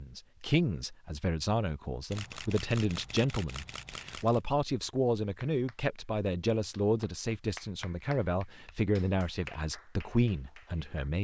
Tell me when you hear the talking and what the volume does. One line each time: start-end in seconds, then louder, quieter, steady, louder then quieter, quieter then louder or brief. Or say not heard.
0.0-11.2 steady.